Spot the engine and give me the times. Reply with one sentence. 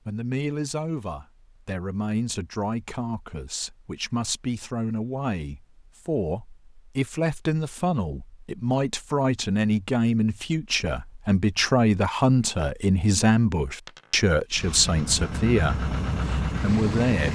The engine can be heard from 14.6 to 17.3 s.